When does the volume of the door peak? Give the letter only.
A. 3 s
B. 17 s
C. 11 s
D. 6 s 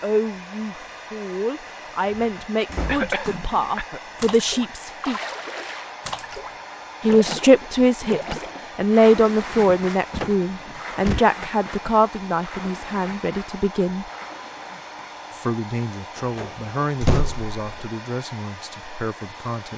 B.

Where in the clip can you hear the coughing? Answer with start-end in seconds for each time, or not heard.
2.9-4.0.